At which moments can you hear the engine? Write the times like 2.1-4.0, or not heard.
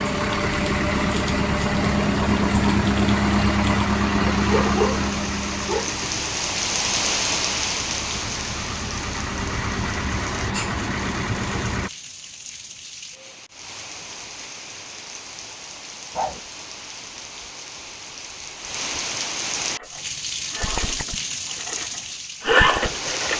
0.0-11.9, 19.6-23.3.